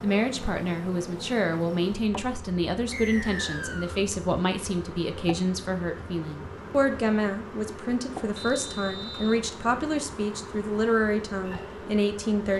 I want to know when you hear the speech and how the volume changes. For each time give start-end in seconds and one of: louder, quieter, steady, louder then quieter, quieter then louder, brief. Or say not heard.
0.0-12.5 steady.